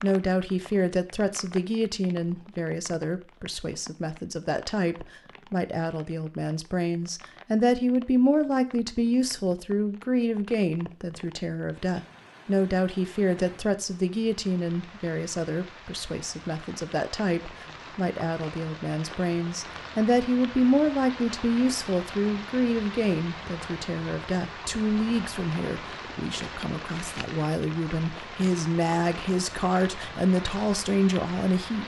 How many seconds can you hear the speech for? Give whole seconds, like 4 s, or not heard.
32 s.